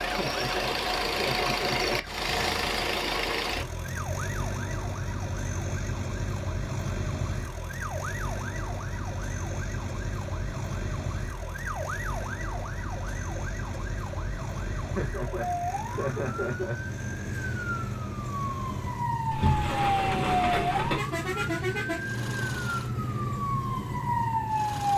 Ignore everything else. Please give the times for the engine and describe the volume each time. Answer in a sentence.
You can hear the engine from 0.0 to 24.9 s, getting quieter.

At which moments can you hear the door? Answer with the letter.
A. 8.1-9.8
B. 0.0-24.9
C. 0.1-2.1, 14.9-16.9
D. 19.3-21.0
D.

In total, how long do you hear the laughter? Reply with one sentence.
You can hear the laughter for 4 seconds altogether.